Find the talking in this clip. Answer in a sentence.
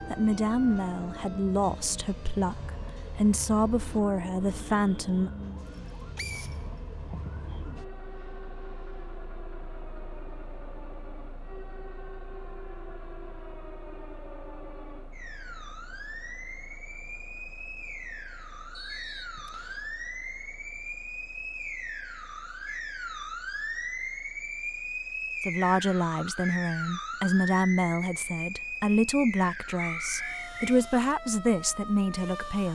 The talking can be heard from 0.1 to 5.3 s and from 25.4 to 32.7 s.